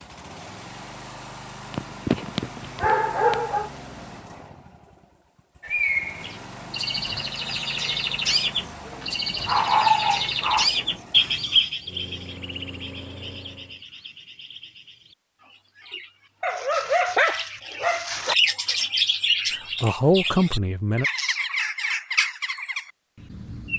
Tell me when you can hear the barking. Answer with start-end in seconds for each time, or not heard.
1.7-3.7, 8.8-10.7, 16.4-18.4.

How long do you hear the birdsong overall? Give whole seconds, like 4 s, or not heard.
18 s.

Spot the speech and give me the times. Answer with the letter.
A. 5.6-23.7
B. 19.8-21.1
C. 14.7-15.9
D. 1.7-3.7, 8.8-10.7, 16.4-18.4
B.